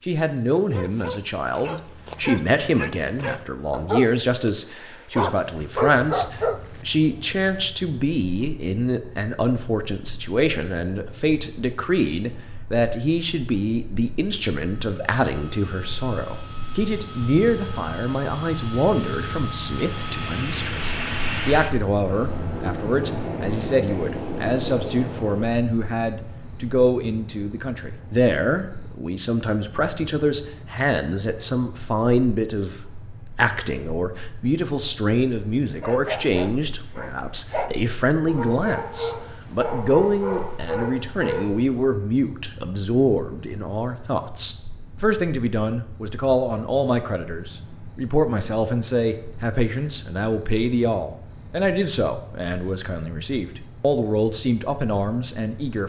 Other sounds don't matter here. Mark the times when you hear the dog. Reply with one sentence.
The dog can be heard from 0.6 to 6.7 s and from 35.8 to 41.7 s.